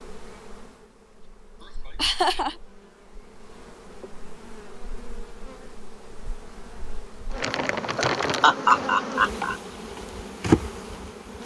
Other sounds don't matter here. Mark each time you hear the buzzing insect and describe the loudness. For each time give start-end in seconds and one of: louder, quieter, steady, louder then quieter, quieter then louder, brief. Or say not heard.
0.0-11.4 louder.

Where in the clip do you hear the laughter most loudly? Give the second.
9 s.